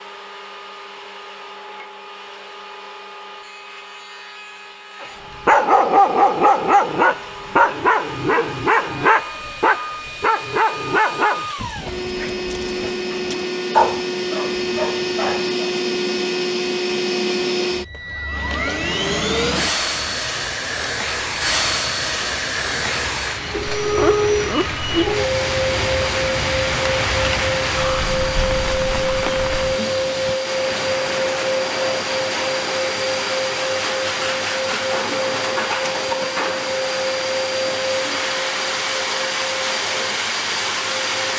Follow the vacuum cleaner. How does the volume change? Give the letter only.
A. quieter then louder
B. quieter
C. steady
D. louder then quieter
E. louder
E.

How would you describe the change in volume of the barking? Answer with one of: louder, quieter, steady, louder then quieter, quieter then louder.
quieter then louder.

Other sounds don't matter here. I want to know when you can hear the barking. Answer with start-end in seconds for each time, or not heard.
5.0-15.7.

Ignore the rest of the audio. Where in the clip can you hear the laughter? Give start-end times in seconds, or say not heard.
23.8-25.2.